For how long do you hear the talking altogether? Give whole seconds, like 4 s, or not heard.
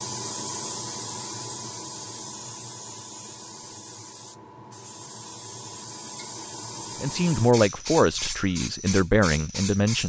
3 s.